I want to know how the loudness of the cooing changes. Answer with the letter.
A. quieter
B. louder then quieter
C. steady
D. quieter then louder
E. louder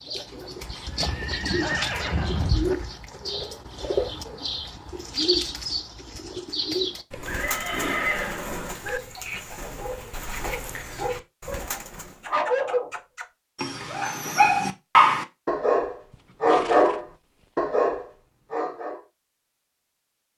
A.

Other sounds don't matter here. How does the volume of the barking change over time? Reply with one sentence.
The volume of the barking goes up.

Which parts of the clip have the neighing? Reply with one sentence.
You can hear the neighing from 0.8 to 2.8 s, from 7.1 to 9.0 s and from 16.1 to 17.4 s.